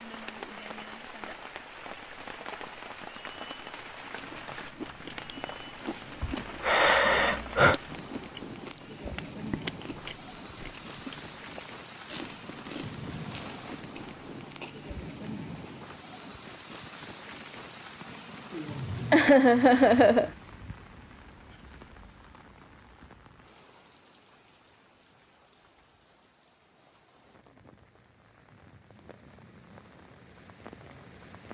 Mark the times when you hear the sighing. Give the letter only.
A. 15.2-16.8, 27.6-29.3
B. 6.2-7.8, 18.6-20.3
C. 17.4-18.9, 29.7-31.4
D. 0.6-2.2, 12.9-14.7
B.